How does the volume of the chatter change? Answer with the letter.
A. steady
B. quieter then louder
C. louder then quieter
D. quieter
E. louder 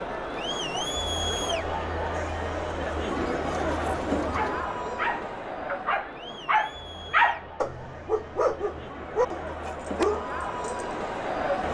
B.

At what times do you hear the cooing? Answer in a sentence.
The cooing can be heard from 3.0 to 4.7 s.